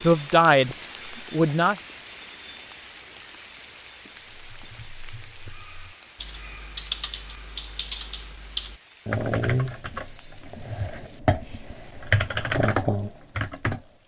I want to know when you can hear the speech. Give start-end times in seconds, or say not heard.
0.0-1.8.